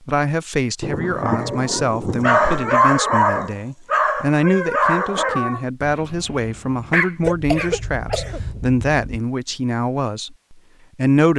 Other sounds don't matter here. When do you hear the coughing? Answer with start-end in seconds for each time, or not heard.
7.2-9.2.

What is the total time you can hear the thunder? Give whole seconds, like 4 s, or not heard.
2 s.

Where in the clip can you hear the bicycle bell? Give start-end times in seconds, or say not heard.
not heard.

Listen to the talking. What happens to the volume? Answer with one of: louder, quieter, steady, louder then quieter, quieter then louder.
steady.